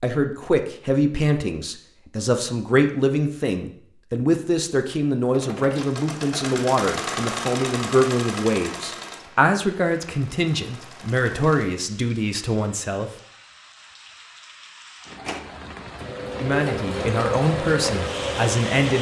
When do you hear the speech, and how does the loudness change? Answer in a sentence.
You can hear the speech from 0.0 to 13.1 s, at a steady volume; and briefly from 16.4 to 18.9 s.